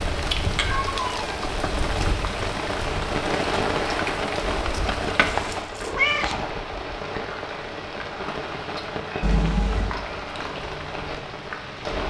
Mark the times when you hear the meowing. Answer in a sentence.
You can hear the meowing from 0.6 to 1.8 s, from 5.2 to 6.5 s and from 9.2 to 10.0 s.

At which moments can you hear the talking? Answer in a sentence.
The talking can't be heard in this clip.